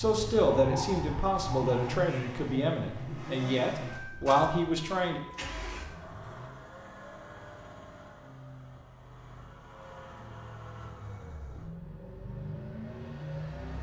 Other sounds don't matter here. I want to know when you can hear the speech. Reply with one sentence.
You can hear the speech from 0.0 to 5.2 s.